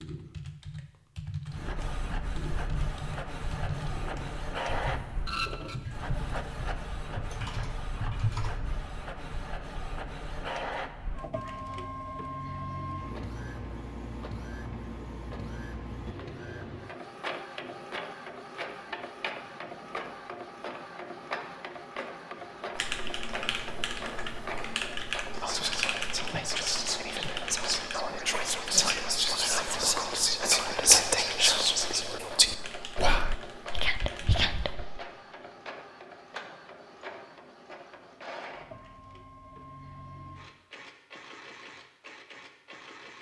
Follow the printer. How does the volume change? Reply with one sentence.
The loudness of the printer goes down.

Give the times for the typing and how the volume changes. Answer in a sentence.
The typing can be heard from 0.0 to 8.5 s, at a steady volume; and from 22.8 to 34.8 s, getting quieter.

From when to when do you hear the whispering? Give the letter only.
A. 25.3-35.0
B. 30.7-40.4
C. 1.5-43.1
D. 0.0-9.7
A.